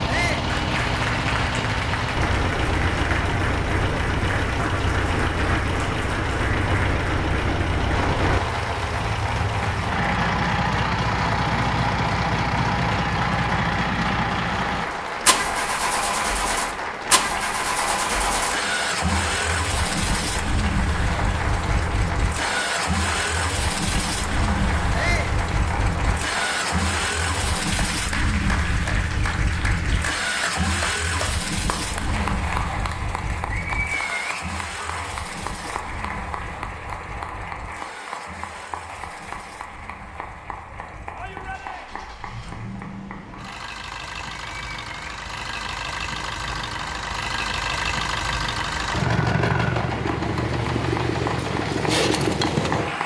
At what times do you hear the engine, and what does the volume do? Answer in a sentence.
The engine can be heard from 0.0 to 53.0 s, getting quieter then louder.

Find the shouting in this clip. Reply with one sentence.
You can hear the shouting from 0.1 to 0.5 s, from 24.9 to 25.4 s and from 41.1 to 42.1 s.